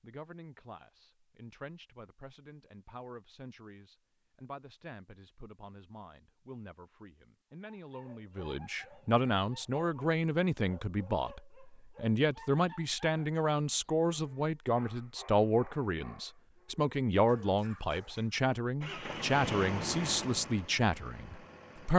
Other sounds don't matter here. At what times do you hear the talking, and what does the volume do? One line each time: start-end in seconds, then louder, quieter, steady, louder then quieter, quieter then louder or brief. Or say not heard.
0.0-21.9 louder.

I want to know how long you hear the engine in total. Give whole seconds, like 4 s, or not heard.
3 s.